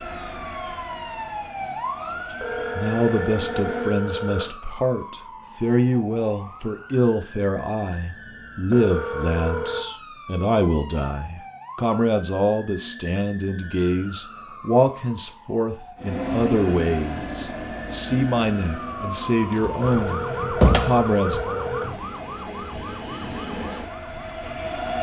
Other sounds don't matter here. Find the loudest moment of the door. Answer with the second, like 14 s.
21 s.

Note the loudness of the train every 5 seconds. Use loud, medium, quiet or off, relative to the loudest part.
medium, off, off, loud, loud.